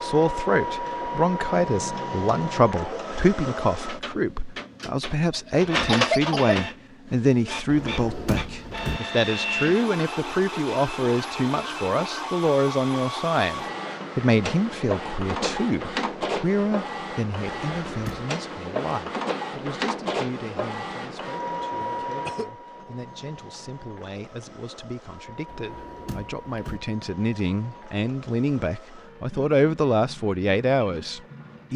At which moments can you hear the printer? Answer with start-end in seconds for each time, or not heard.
0.0-31.7.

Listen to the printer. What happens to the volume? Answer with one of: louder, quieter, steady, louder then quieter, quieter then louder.
quieter.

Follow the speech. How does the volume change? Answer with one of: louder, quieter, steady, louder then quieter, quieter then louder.
quieter then louder.